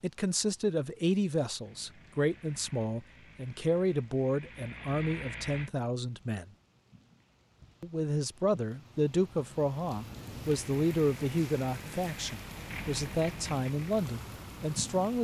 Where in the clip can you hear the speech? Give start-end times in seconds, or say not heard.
0.0-6.5, 7.8-15.1.